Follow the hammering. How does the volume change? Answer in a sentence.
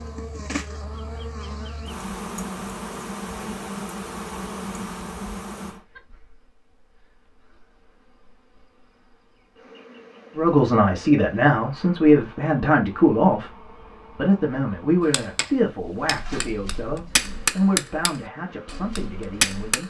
The volume of the hammering goes up, then down.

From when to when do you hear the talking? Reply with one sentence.
You can hear the talking from 10.3 to 19.8 s.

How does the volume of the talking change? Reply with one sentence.
The loudness of the talking goes down.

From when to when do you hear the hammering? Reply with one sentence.
The hammering can be heard from 15.1 to 19.8 s.